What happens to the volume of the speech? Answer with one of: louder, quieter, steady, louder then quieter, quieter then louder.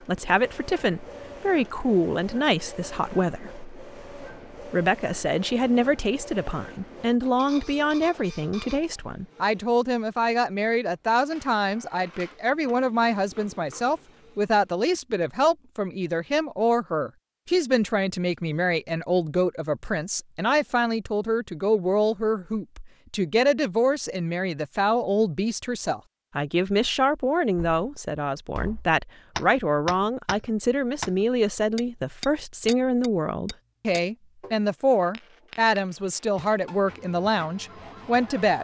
steady.